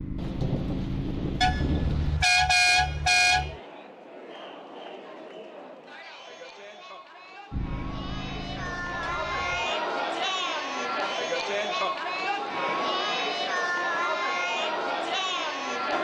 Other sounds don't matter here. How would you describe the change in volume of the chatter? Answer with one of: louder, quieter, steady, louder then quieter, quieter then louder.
louder.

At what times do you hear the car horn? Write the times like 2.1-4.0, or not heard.
1.4-3.5, 9.0-9.7.